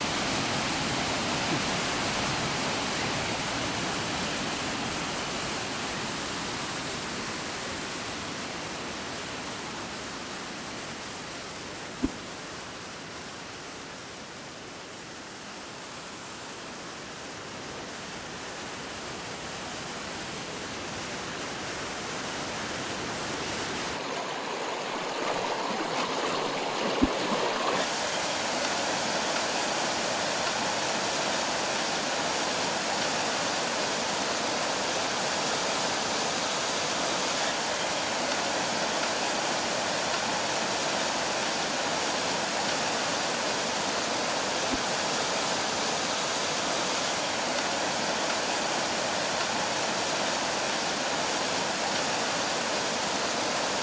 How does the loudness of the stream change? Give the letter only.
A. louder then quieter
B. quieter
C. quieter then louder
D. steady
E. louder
C.